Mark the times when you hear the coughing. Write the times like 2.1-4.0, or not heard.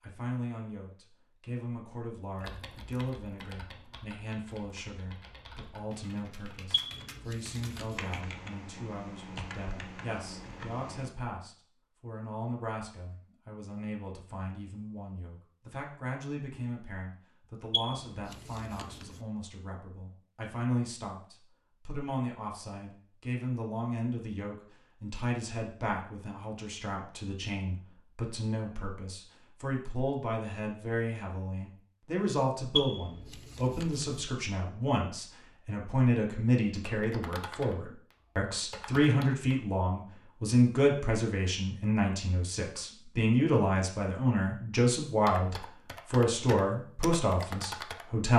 not heard.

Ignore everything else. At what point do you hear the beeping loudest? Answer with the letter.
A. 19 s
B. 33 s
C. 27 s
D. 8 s
B.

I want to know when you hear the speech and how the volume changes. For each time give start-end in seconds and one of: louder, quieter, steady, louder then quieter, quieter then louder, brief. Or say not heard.
0.0-48.3 louder.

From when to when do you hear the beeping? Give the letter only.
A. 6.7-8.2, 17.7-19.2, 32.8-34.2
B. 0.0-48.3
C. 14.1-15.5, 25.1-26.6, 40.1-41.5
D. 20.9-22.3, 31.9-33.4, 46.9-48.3
A.